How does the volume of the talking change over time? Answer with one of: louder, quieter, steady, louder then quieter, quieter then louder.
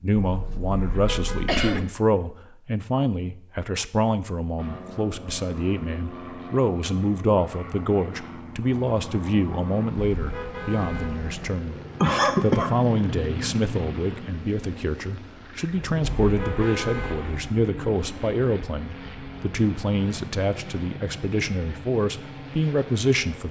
steady.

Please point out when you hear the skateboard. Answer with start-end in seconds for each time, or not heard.
not heard.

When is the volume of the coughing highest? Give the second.
12 s.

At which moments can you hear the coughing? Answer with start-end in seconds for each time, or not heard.
0.1-1.9, 12.0-12.8.